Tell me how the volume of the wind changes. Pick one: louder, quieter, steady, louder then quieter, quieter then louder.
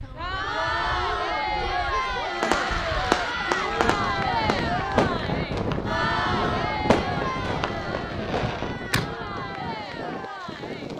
louder then quieter.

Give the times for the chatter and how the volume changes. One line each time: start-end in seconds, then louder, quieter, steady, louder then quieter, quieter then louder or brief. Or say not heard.
0.0-10.9 quieter.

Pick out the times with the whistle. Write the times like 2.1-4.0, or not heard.
not heard.